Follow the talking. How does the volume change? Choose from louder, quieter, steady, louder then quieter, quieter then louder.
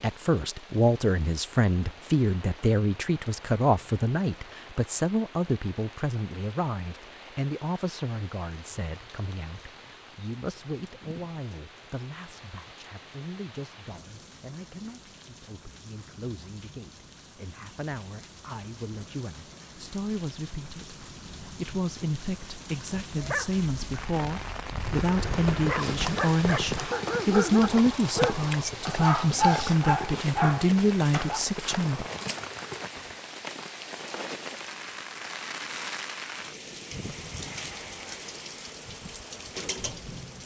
quieter then louder.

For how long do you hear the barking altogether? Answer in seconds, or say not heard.
8 s.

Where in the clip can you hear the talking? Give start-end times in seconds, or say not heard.
0.0-32.0.